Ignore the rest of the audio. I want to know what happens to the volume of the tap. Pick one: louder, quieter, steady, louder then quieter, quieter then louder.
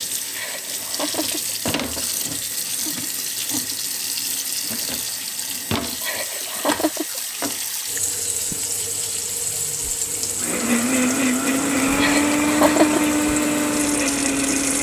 steady.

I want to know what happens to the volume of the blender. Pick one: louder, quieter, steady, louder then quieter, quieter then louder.
steady.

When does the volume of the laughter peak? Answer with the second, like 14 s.
13 s.